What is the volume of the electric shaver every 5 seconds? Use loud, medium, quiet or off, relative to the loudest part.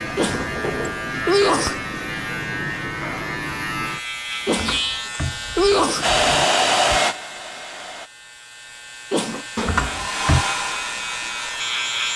loud, medium, loud.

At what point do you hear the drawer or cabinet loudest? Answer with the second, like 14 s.
10 s.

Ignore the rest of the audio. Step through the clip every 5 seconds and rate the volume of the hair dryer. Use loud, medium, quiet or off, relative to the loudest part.
off, loud, medium.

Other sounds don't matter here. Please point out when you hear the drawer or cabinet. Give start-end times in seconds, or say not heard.
0.2-1.1, 4.5-6.5, 9.6-10.4.